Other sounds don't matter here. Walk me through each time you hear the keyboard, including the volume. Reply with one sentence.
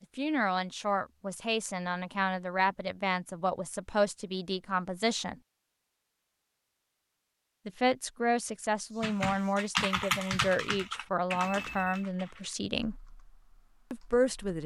The keyboard can be heard from 8.9 to 14.6 s, getting quieter.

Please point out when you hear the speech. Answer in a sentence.
The speech can be heard from 0.1 to 5.3 s, from 7.7 to 12.9 s and from 13.9 to 14.6 s.